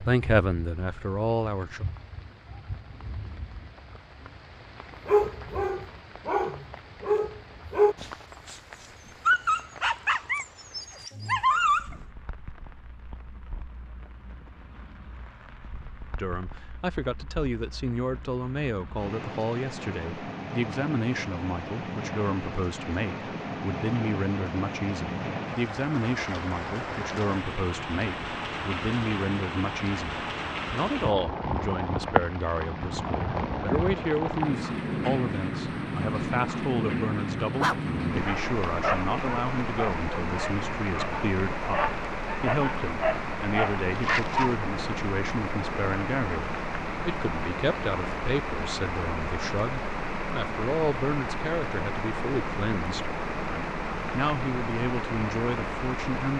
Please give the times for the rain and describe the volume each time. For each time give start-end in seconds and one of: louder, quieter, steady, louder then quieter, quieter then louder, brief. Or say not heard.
0.0-56.3 louder.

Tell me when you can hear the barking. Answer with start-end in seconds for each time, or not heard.
5.0-8.6, 9.2-12.0, 37.6-44.5.